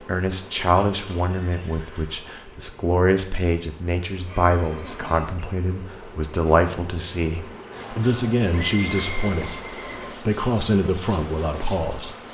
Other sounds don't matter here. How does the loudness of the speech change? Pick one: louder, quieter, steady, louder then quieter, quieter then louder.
steady.